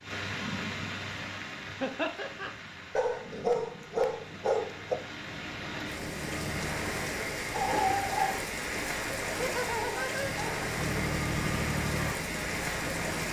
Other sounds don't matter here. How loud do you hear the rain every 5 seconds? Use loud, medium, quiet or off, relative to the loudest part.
medium, loud, loud.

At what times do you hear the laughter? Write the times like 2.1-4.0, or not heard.
1.8-2.5, 9.3-10.4.